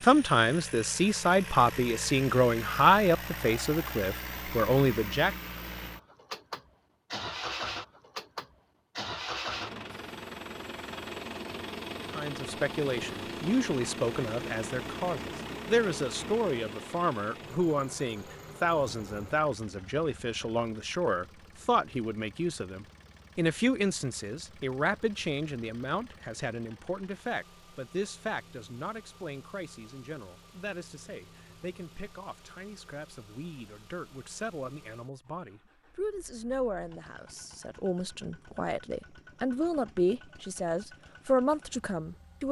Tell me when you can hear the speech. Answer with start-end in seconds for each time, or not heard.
0.0-5.3, 12.2-42.4.